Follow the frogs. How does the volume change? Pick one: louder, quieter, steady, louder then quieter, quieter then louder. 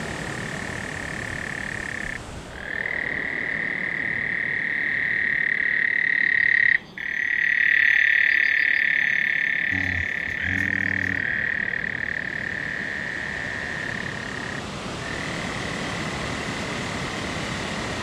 louder then quieter.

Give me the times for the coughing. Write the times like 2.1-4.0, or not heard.
not heard.